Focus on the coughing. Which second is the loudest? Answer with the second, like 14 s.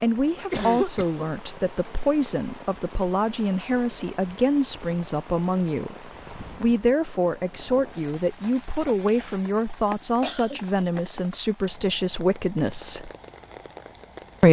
1 s.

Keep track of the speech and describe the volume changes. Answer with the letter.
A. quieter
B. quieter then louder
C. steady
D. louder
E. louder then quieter
C.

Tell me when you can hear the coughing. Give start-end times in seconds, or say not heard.
0.3-1.2, 10.2-10.6.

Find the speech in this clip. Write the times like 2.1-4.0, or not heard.
0.0-13.1.